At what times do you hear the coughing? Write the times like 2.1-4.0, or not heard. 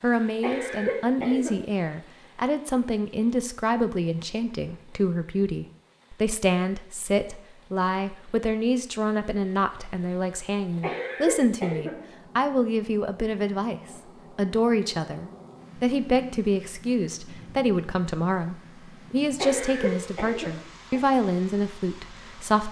0.4-1.6, 10.8-11.9, 19.4-21.0.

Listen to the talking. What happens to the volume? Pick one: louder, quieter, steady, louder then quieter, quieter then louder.
steady.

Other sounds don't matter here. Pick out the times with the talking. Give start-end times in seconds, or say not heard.
0.0-22.6.